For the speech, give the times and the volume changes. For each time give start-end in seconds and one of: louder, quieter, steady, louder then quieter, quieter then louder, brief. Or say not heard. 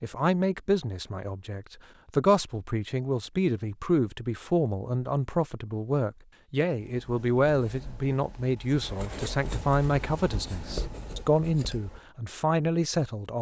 0.0-13.3 steady.